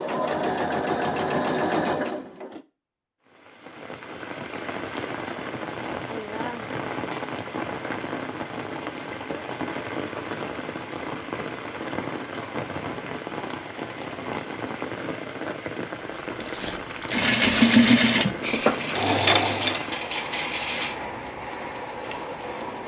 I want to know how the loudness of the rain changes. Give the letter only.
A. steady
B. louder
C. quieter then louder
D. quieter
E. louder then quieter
A.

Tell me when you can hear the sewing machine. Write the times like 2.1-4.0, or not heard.
0.0-2.6, 16.4-19.9.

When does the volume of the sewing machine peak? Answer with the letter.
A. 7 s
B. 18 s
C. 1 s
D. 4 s
B.